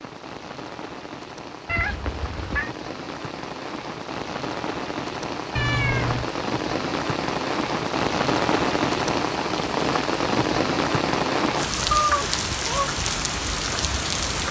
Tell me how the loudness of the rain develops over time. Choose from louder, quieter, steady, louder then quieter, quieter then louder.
louder.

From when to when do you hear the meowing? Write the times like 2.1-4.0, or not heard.
1.6-2.7, 5.5-6.3, 11.9-12.9.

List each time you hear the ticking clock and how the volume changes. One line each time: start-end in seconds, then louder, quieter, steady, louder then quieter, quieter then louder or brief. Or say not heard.
not heard.